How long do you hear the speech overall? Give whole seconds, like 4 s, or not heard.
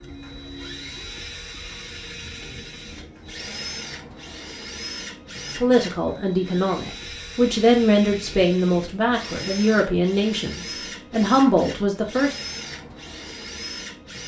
7 s.